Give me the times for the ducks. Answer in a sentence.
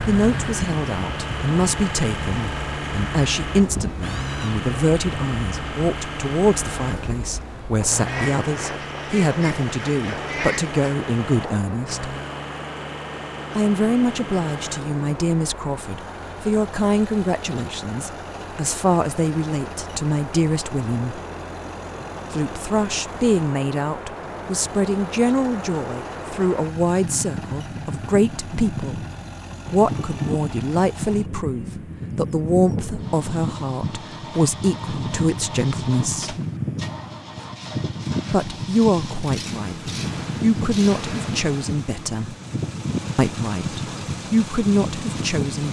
You can hear the ducks from 8.1 to 10.8 s.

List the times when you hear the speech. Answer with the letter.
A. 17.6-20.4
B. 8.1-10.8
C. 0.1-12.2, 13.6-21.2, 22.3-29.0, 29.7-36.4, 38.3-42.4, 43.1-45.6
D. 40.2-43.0
C.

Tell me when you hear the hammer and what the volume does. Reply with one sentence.
You can't hear the hammer here.